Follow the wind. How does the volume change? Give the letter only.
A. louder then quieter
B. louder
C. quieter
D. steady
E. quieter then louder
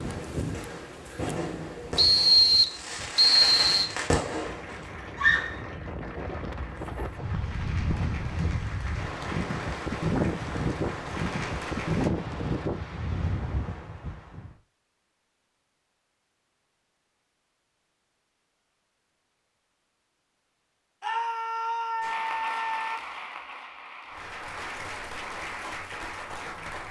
B.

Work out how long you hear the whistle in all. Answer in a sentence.
The whistle can be heard for 2 seconds in total.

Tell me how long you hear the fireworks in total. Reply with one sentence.
You can hear the fireworks for 5 seconds altogether.